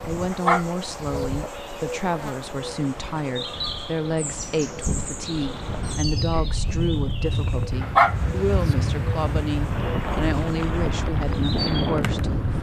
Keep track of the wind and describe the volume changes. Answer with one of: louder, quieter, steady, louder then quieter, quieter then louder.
louder.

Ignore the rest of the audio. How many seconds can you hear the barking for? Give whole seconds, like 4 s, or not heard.
2 s.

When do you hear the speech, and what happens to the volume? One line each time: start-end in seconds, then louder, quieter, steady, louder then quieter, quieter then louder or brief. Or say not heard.
0.1-12.5 steady.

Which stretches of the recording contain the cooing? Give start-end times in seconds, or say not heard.
not heard.